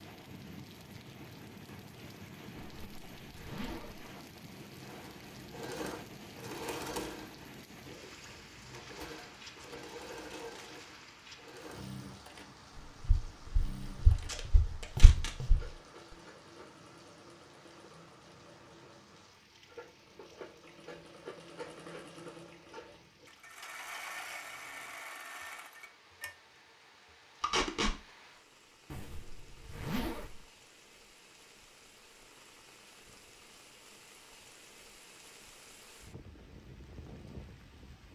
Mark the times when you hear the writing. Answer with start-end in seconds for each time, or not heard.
not heard.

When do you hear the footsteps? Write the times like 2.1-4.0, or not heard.
13.0-15.7.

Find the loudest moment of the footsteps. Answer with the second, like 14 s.
15 s.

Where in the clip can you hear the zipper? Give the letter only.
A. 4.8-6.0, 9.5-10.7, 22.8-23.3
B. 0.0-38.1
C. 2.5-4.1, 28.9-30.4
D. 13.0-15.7
C.